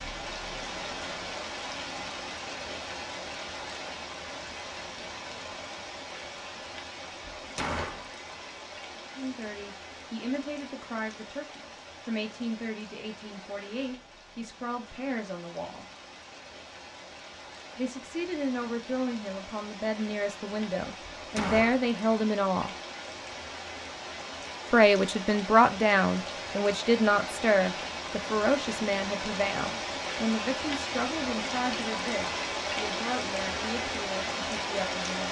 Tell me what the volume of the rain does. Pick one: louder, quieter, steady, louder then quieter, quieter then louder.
quieter then louder.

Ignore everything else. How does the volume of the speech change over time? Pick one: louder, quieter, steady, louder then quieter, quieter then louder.
louder then quieter.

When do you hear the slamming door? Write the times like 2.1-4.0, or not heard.
7.4-8.1, 21.0-21.9.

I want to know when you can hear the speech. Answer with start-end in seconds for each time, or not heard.
8.9-15.8, 17.8-22.8, 24.7-35.2.